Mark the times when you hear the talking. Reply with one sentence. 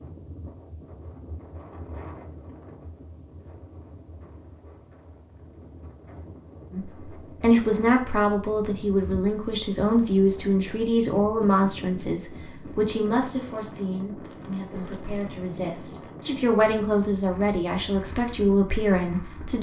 You can hear the talking from 6.7 to 19.5 s.